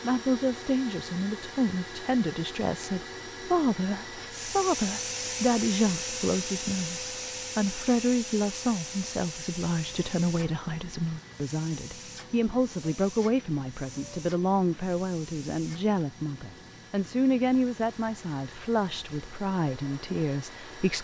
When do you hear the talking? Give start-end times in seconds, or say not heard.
0.0-21.0.